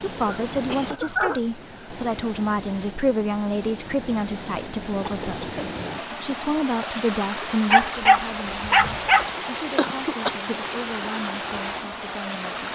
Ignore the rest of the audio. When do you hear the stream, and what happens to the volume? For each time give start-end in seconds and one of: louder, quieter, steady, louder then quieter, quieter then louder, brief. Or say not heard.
0.0-12.7 louder.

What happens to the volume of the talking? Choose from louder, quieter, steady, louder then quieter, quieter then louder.
quieter.